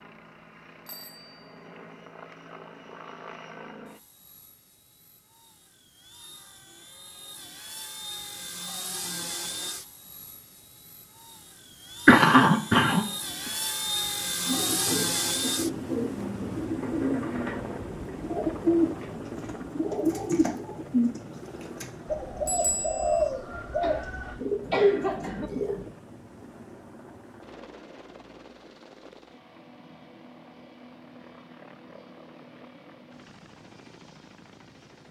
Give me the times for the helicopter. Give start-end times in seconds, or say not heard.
0.0-35.0.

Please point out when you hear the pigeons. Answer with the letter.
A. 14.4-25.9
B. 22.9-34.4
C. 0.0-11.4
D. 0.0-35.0
A.